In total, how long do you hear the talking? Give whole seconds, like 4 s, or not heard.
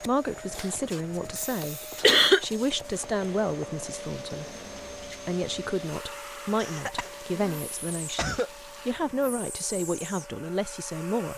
10 s.